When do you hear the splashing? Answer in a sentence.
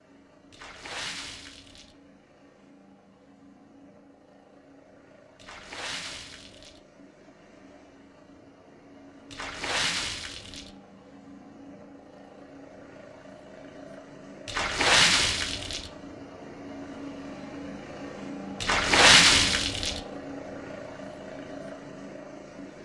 The splashing can be heard from 0.5 to 1.9 s, from 5.3 to 6.8 s, from 9.3 to 10.7 s, from 14.4 to 15.9 s and from 18.6 to 20.0 s.